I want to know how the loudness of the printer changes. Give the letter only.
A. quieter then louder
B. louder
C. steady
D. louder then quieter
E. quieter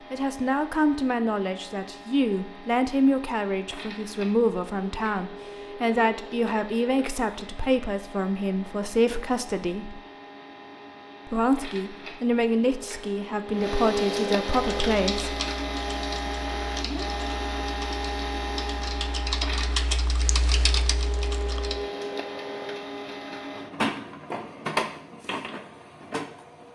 B.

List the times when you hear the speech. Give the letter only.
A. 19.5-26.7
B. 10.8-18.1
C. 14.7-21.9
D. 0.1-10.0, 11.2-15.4
D.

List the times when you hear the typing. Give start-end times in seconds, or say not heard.
14.7-21.9.